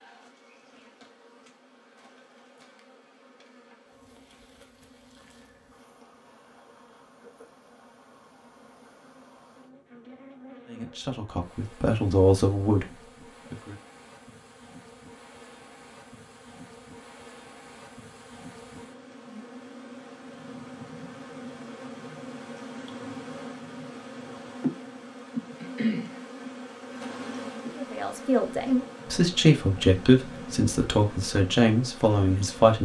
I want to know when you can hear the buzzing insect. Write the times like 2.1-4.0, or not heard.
0.0-32.7.